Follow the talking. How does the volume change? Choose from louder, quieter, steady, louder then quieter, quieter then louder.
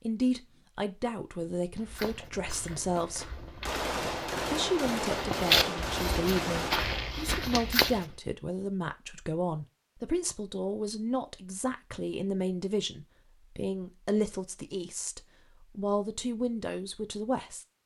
steady.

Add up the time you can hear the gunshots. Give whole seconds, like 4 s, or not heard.
4 s.